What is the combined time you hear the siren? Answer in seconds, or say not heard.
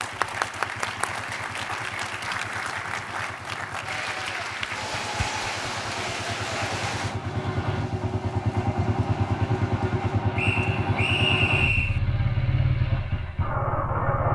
not heard.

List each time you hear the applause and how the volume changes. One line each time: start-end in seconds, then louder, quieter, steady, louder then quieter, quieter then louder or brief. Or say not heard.
0.0-10.3 quieter.